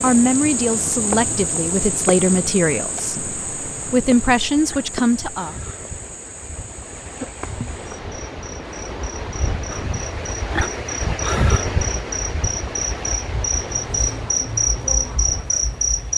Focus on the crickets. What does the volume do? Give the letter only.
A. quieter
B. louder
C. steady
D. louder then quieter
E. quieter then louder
E.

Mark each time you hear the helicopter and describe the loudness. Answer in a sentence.
You can't hear the helicopter here.